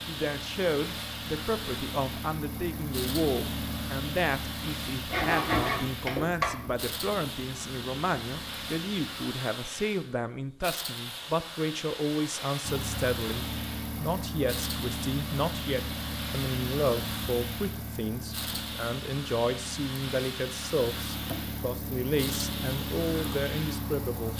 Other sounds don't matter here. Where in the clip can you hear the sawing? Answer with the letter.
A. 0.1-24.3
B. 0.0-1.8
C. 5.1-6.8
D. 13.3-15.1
C.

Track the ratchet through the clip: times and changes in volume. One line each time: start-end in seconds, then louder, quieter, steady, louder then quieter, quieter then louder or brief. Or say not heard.
not heard.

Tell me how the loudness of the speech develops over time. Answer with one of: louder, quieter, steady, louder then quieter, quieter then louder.
steady.